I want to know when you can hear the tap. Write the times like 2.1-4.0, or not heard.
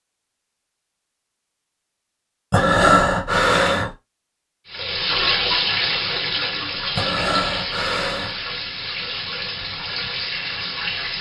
4.7-11.1.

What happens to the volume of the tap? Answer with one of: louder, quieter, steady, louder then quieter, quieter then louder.
quieter.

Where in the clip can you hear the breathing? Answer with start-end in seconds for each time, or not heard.
2.5-3.9, 7.0-8.3.